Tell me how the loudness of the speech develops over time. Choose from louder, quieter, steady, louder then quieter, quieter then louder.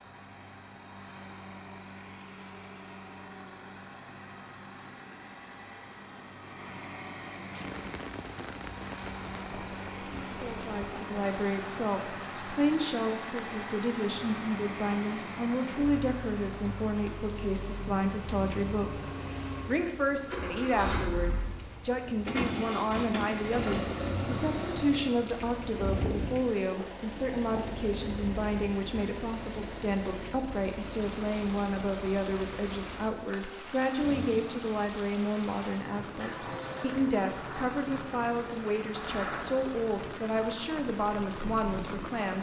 steady.